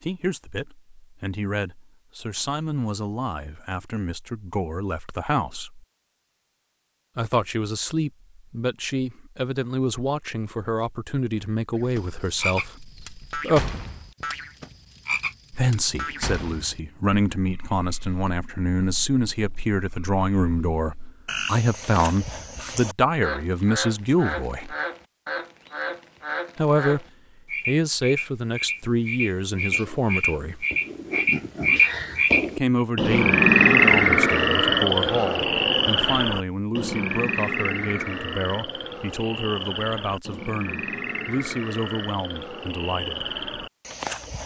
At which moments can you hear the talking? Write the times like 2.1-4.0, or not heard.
0.0-5.8, 7.2-13.7, 15.5-24.8, 26.6-27.1, 27.6-30.6, 32.5-43.4.